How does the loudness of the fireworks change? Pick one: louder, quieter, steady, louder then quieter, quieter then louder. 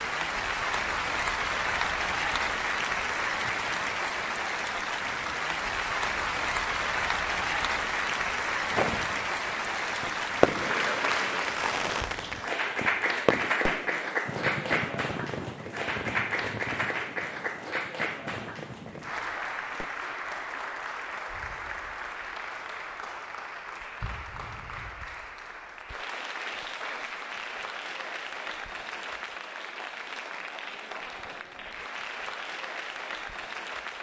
quieter.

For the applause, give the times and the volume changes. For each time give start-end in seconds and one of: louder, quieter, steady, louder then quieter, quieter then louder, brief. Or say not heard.
0.0-33.9 quieter.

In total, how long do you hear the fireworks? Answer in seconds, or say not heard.
11 s.